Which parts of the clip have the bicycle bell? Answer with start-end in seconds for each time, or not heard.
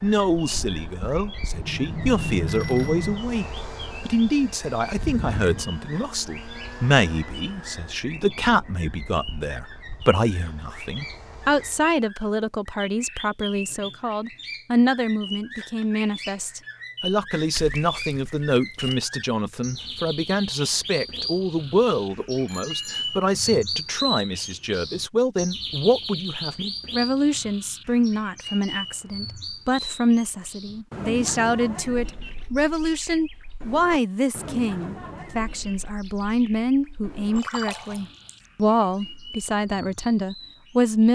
1.5-3.2, 22.4-23.1, 37.4-37.8.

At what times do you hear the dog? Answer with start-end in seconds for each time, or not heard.
not heard.